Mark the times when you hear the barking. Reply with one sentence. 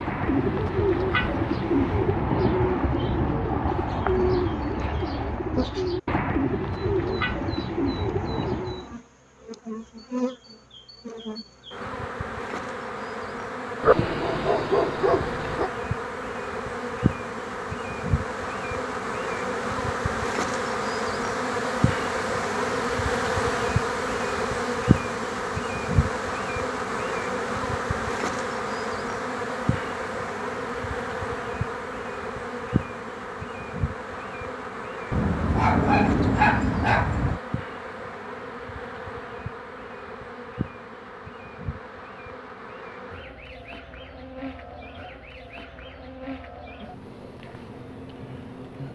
You can hear the barking from 13.8 to 15.7 s and from 35.1 to 37.4 s.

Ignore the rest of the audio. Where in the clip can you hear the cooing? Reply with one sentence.
You can hear the cooing from 0.0 to 8.9 s.